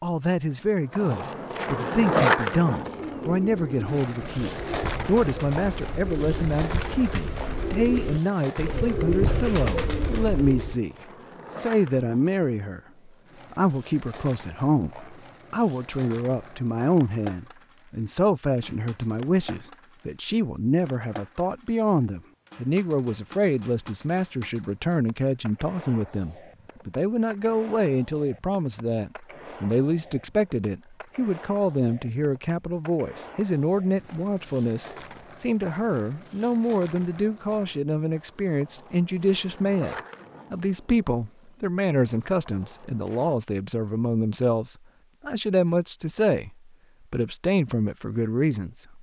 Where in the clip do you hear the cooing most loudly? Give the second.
9 s.